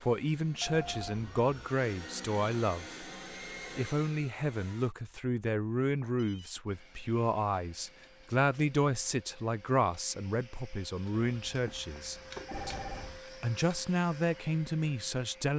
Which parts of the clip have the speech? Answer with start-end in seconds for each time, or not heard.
0.0-3.0, 3.8-12.8, 13.4-15.5.